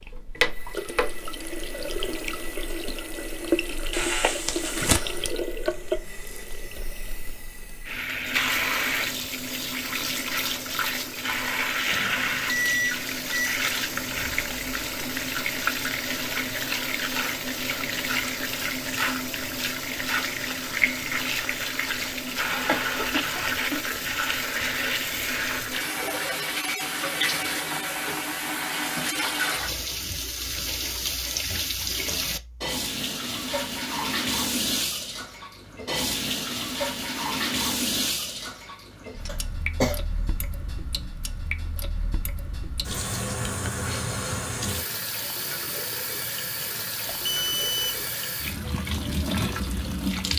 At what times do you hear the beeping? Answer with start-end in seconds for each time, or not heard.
11.9-13.6, 47.0-48.0.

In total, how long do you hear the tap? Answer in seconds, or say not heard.
50 s.